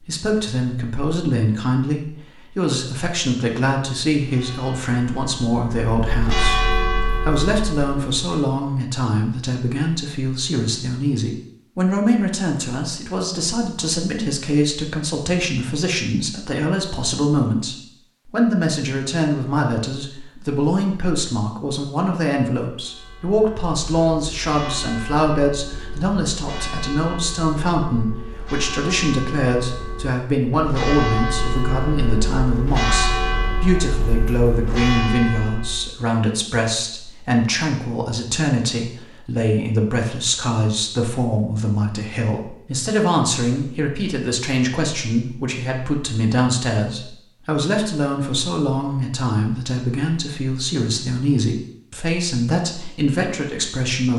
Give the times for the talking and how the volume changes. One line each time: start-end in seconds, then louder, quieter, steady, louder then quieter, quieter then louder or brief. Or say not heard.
0.0-54.1 steady.